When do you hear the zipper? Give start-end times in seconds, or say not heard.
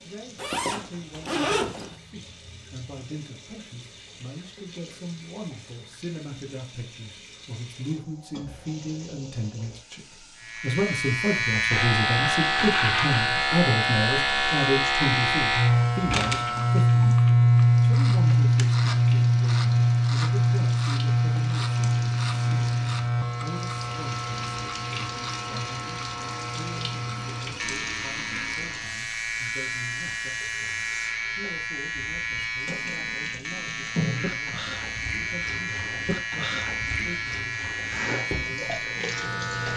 0.3-1.9.